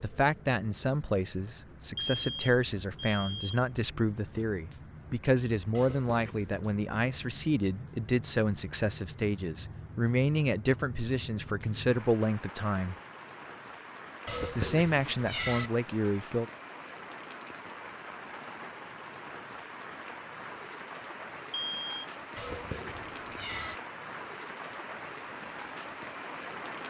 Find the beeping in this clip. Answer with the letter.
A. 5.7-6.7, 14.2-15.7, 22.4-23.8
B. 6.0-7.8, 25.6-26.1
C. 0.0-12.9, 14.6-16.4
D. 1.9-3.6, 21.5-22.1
D.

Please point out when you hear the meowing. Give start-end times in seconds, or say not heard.
5.7-6.7, 14.2-15.7, 22.4-23.8.